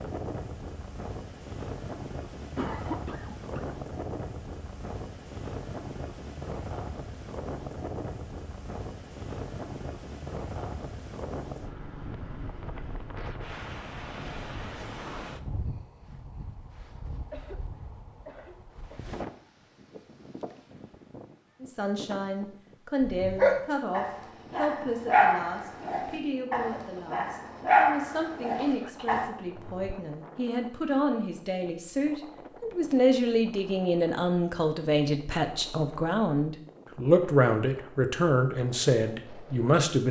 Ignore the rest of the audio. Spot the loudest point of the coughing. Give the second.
3 s.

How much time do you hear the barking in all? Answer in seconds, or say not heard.
6 s.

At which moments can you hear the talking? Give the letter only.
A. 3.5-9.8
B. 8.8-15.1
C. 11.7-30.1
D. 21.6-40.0
D.